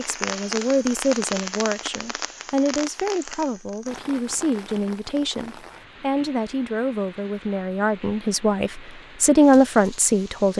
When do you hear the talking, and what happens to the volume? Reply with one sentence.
You can hear the talking from 0.0 to 10.5 s, getting louder.